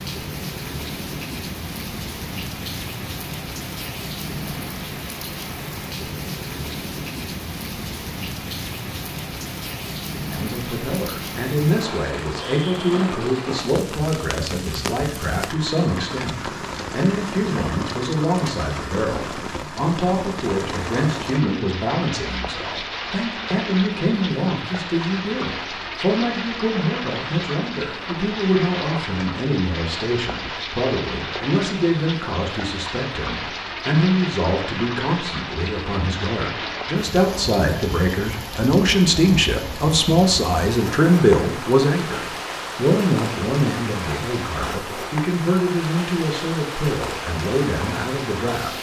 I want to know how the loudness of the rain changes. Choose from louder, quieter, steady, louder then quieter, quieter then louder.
steady.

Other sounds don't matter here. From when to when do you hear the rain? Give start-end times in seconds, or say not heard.
0.0-48.7.